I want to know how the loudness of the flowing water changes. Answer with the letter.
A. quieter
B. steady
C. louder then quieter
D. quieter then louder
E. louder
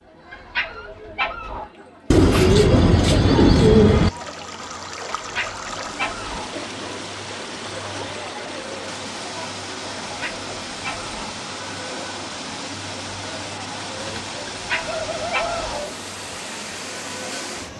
B.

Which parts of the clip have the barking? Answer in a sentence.
You can hear the barking from 0.3 to 1.6 s, from 5.2 to 6.5 s, from 10.0 to 11.3 s and from 14.7 to 15.8 s.